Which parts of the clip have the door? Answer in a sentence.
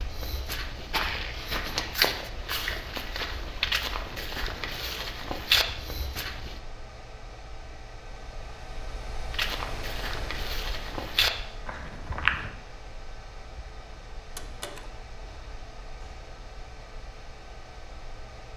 You can hear the door from 14.2 to 14.9 s.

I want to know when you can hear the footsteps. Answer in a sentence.
The footsteps can be heard from 0.0 to 6.6 s and from 9.3 to 12.5 s.